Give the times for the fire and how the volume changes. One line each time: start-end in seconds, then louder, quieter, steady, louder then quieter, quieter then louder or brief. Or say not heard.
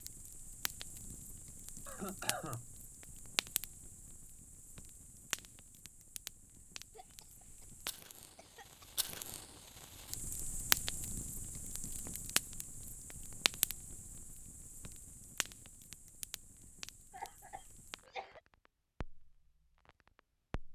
0.0-20.6 louder then quieter.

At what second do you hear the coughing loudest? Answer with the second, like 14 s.
2 s.